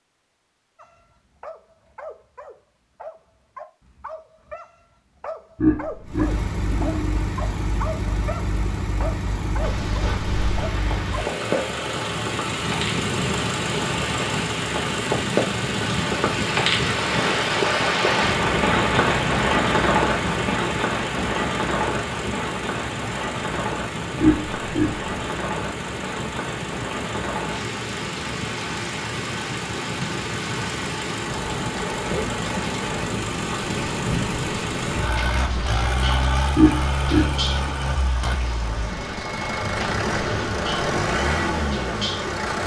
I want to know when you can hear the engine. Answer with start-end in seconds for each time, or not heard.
6.0-42.6.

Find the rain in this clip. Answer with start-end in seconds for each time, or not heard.
9.6-42.5.